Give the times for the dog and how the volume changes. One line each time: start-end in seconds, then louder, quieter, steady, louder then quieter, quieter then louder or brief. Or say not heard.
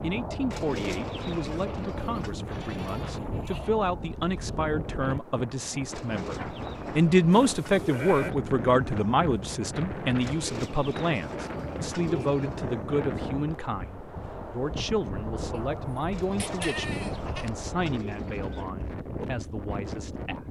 not heard.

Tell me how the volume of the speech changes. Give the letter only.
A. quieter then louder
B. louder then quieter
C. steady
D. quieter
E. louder
B.